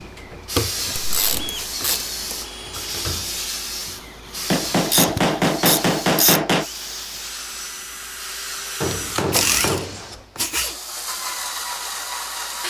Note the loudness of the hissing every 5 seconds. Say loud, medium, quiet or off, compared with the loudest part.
loud, medium, quiet.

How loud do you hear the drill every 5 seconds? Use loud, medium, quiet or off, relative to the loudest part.
medium, loud, loud.